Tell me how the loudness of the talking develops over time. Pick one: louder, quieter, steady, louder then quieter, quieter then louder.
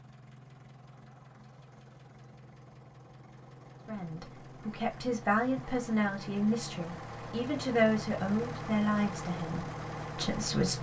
quieter.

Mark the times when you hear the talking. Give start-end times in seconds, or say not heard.
3.9-10.7.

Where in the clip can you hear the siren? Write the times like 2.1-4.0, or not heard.
not heard.